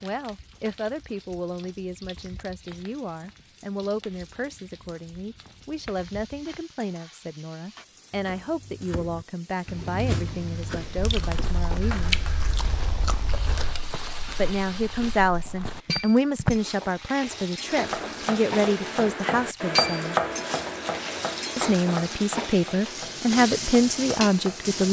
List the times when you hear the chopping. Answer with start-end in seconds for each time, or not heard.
8.1-12.4, 17.6-24.8.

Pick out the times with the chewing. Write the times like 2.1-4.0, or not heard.
10.9-13.8.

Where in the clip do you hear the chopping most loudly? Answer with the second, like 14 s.
20 s.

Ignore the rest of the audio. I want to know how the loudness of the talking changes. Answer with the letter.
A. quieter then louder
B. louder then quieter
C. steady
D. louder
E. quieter
D.